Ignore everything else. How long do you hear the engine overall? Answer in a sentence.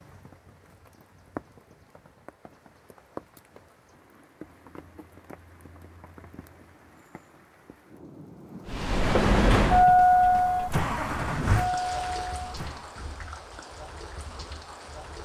The engine can be heard for 4 seconds in total.